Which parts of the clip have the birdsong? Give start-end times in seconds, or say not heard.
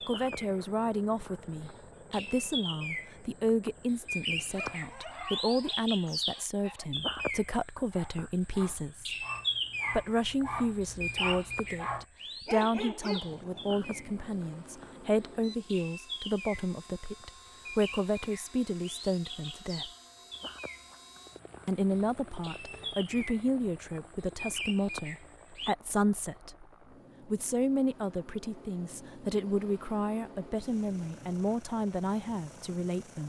0.0-25.8.